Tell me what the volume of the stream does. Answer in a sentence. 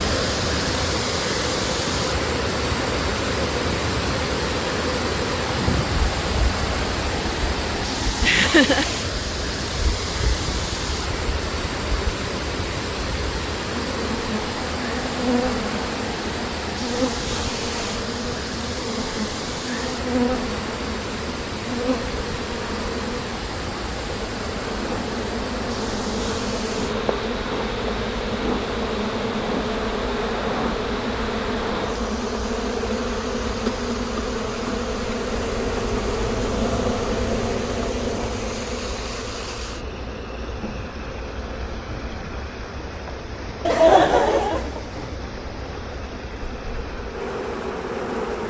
The volume of the stream goes down.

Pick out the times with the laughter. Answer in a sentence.
You can hear the laughter from 8.2 to 8.9 s and from 43.6 to 45.1 s.